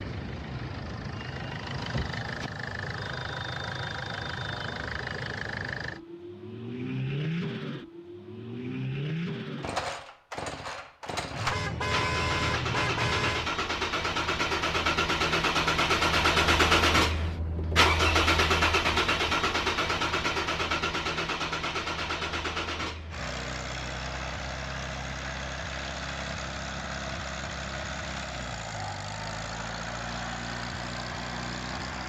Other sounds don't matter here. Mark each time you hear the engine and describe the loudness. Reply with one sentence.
You can hear the engine from 0.0 to 32.0 s, getting louder then quieter.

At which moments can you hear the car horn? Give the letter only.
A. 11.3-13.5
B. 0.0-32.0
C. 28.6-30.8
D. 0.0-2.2
A.